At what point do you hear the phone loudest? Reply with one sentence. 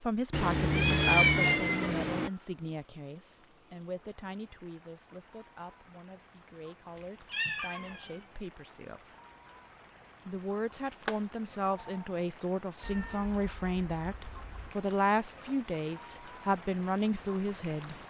The volume of the phone peaks at 1 second.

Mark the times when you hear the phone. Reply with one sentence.
You can hear the phone from 0.3 to 1.6 s and from 11.1 to 12.1 s.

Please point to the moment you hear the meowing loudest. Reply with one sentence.
The volume of the meowing peaks at 1 second.